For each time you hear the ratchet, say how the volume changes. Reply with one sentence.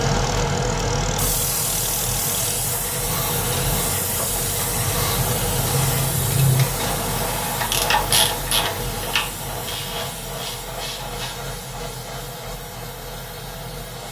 You can hear the ratchet from 3.5 to 11.3 s, getting louder then quieter.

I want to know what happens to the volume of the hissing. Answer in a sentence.
The loudness of the hissing goes down.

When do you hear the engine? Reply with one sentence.
You can hear the engine from 0.0 to 2.6 s.